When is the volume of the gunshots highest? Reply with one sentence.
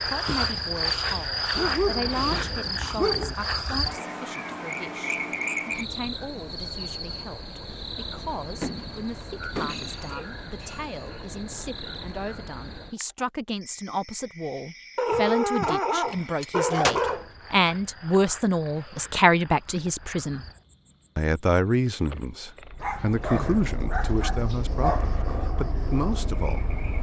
The loudest moment of the gunshots is at 17 seconds.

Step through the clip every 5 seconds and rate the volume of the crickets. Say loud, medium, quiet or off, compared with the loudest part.
loud, medium, quiet, quiet, quiet, quiet.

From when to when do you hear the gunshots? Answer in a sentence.
You can hear the gunshots from 8.6 to 10.2 s and from 16.1 to 17.0 s.